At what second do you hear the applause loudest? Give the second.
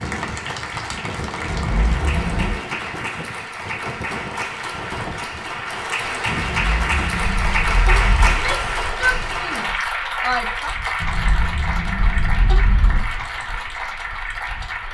8 s.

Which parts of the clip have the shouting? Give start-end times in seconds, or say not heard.
8.2-10.8.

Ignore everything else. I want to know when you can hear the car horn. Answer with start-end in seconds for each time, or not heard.
1.4-2.6, 6.3-8.3, 11.0-13.0.